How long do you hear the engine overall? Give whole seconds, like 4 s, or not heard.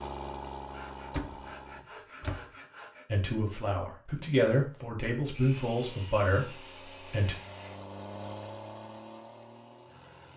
6 s.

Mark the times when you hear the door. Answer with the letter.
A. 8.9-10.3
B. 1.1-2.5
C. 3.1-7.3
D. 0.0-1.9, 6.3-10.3
B.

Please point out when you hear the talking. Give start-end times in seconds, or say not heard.
3.1-7.3.